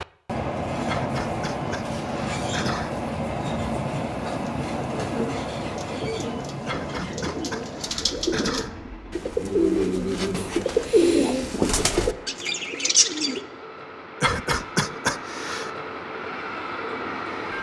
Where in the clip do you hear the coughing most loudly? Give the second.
15 s.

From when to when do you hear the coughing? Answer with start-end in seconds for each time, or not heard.
0.8-3.0, 6.7-8.8, 14.2-15.7.